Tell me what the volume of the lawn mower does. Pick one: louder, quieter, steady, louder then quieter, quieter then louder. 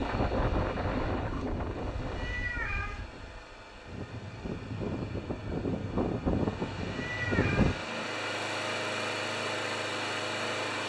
louder.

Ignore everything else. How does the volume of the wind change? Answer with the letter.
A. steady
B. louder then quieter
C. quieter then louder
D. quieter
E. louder
C.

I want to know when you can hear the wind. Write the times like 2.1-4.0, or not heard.
0.0-7.8.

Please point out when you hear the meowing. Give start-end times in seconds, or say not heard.
2.1-3.0, 6.9-7.8.